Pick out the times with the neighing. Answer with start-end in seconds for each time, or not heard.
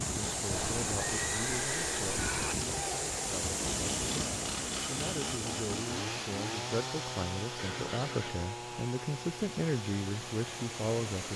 0.5-2.5, 7.5-8.3.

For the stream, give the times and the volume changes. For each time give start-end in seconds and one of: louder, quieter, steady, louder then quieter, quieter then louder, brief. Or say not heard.
0.0-11.3 quieter.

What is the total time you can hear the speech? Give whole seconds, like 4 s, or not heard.
11 s.